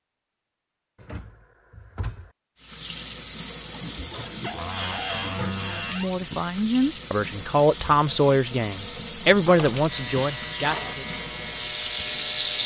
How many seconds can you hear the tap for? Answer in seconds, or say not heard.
10 s.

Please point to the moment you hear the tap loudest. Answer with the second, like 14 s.
12 s.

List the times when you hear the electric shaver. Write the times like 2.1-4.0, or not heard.
9.8-12.6.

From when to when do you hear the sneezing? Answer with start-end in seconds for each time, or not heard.
3.7-5.7.